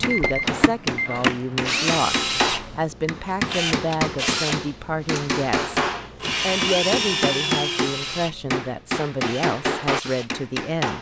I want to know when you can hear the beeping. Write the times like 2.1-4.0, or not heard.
0.1-1.2.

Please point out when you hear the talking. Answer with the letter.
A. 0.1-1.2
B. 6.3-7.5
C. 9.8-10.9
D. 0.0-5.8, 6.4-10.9
D.